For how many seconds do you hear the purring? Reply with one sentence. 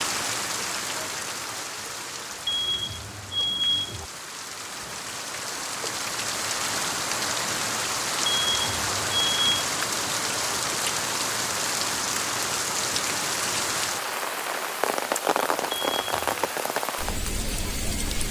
The purring can't be heard in this clip.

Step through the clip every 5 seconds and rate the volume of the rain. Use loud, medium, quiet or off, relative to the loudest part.
medium, loud, loud, loud.